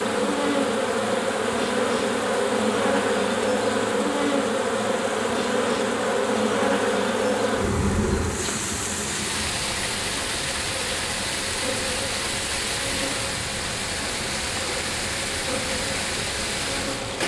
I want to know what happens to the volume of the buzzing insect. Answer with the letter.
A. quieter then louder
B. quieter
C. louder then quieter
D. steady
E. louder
B.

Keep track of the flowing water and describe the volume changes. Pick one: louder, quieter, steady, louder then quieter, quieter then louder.
louder.